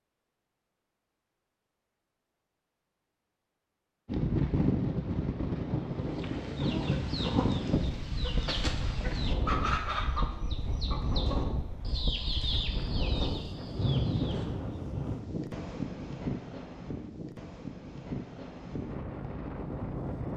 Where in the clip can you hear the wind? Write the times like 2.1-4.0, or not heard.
4.0-20.3.